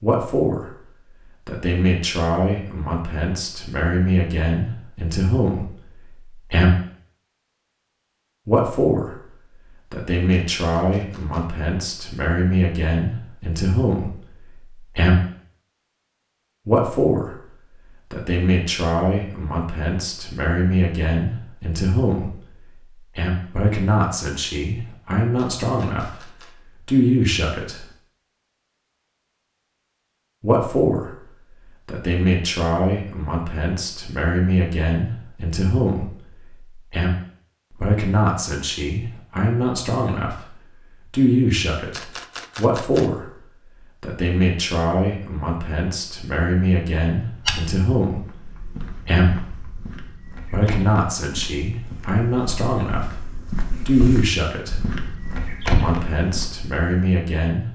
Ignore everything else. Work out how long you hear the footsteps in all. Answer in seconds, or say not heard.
10 s.